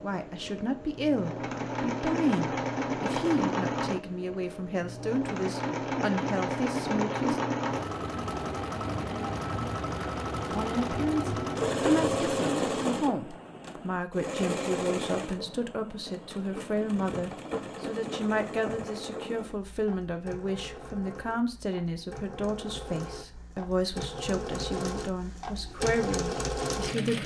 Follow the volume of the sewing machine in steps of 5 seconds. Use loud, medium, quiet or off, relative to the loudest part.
loud, loud, loud, medium, medium, loud.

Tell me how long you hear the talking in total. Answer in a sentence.
You can hear the talking for 24 seconds altogether.